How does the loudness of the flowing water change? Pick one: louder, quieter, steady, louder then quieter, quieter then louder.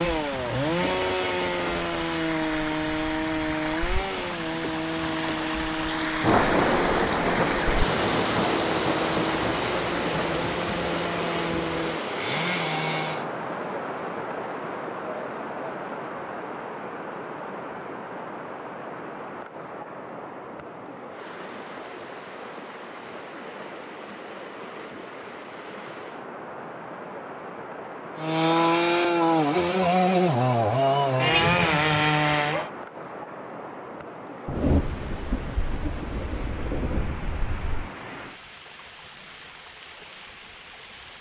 quieter.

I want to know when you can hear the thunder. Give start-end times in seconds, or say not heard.
6.2-10.6, 34.5-37.9.